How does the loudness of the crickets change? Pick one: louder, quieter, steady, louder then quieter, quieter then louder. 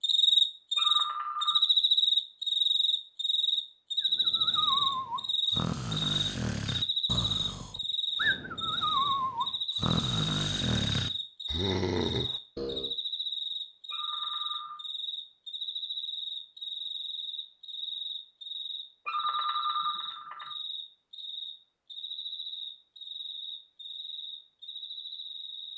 quieter.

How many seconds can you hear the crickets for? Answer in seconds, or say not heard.
26 s.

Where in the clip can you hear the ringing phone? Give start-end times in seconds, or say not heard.
0.8-1.6, 13.9-14.8, 19.1-20.6.